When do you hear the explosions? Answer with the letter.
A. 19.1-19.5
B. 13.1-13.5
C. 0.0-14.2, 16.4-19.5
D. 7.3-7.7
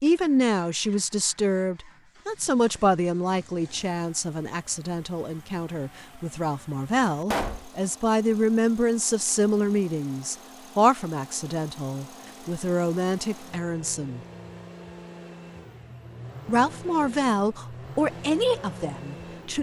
D.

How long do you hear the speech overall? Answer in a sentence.
You can hear the speech for 17 seconds altogether.